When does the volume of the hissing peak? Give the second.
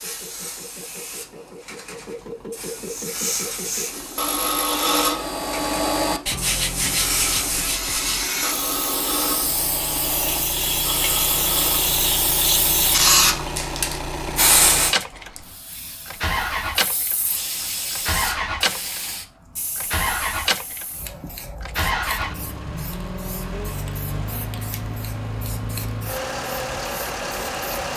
13 s.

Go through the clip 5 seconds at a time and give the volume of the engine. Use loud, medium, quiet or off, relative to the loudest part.
medium, medium, loud, loud, loud, loud.